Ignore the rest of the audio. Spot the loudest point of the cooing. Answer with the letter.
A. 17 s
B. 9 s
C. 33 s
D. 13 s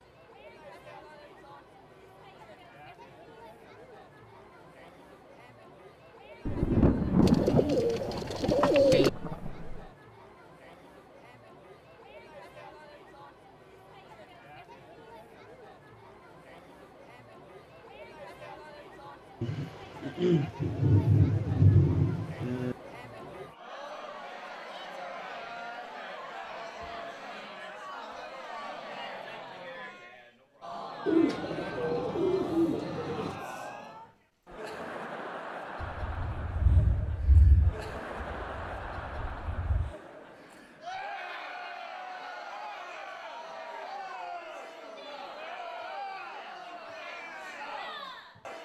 B.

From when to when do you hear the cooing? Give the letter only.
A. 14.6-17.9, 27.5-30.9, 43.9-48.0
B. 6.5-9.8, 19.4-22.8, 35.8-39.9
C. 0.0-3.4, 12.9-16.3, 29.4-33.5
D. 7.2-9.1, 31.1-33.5
D.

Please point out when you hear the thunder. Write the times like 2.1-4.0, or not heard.
6.5-9.8, 19.4-22.8, 35.8-39.9.